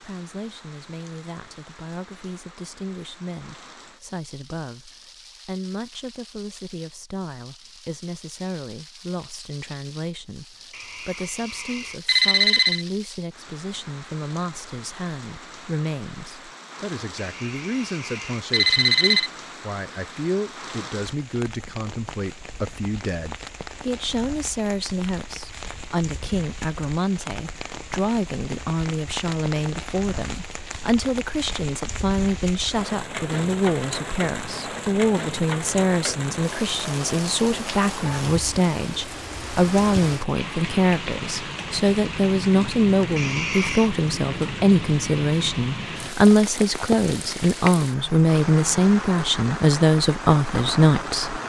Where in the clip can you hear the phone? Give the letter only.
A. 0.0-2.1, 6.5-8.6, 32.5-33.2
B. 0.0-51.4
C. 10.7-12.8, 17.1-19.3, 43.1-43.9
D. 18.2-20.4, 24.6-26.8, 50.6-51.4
C.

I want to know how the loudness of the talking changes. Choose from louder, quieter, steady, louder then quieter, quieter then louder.
louder.